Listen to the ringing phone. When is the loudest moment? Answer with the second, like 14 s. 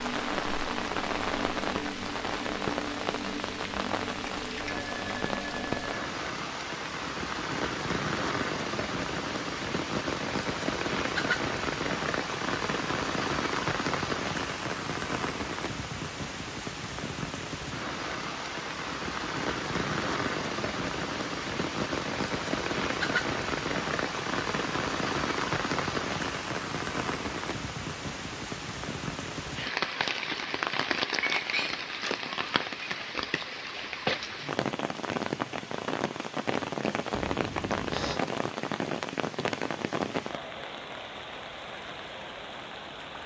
38 s.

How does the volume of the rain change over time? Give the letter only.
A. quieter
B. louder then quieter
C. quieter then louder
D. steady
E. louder
D.